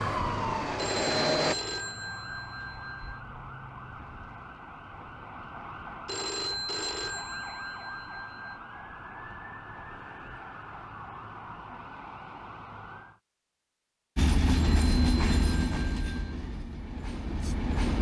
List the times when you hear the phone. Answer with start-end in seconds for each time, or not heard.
0.8-3.2, 6.0-8.6, 14.5-16.4.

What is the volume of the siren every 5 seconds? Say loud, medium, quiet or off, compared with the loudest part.
loud, medium, medium, off.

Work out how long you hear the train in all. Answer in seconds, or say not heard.
5 s.